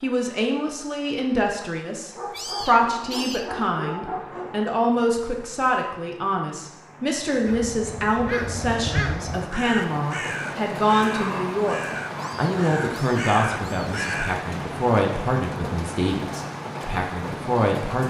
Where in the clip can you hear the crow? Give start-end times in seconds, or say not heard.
7.5-14.4.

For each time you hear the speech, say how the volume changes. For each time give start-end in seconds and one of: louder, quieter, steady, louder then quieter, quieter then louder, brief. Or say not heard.
0.0-18.0 steady.